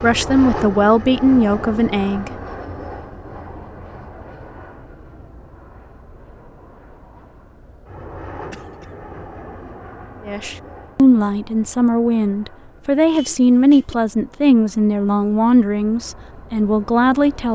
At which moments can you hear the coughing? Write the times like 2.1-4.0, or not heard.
8.3-8.9.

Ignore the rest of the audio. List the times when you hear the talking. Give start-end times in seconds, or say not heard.
0.0-2.3, 10.2-17.5.